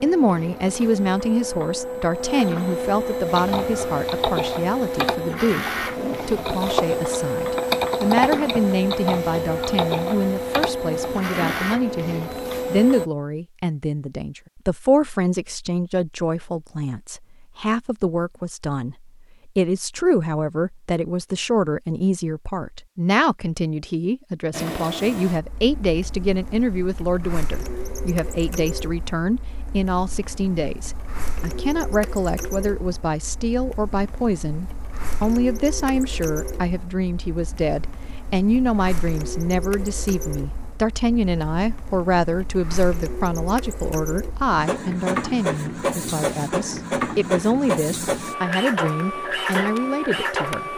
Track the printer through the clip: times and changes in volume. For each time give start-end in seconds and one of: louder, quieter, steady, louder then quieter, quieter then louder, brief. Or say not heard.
0.0-13.1 steady
24.5-50.7 louder.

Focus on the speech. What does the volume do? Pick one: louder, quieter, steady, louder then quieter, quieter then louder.
steady.